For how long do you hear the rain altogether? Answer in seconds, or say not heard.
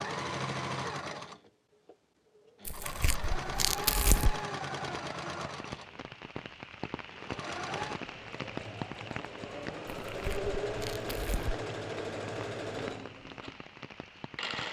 10 s.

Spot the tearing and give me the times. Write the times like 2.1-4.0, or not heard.
2.6-4.4, 10.1-11.6.